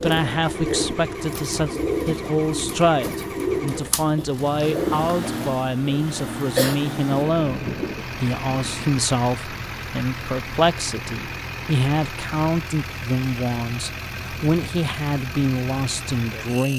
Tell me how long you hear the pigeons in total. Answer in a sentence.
The pigeons can be heard for 7 seconds in total.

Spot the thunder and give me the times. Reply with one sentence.
You can hear the thunder from 7.1 to 9.0 s.